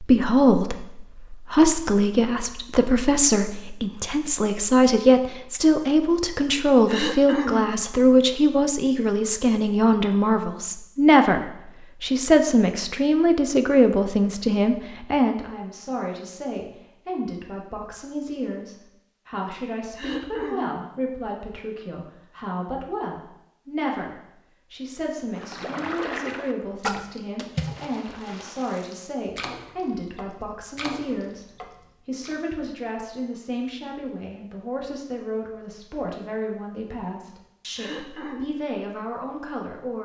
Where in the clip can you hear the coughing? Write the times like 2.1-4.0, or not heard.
6.8-7.8, 19.9-20.9, 37.8-38.5.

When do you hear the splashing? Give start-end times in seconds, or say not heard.
25.4-32.4.